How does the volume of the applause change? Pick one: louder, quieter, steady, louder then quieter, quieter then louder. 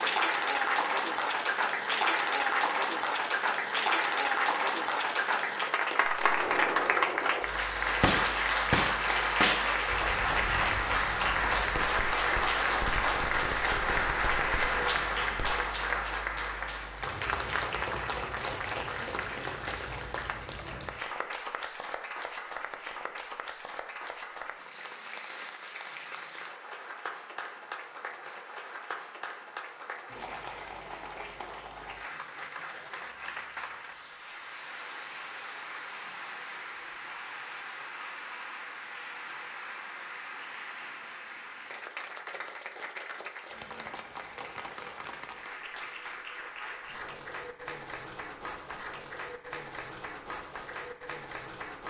quieter.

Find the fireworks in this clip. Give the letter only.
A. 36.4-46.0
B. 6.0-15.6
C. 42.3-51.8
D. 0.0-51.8
B.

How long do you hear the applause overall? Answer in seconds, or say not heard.
52 s.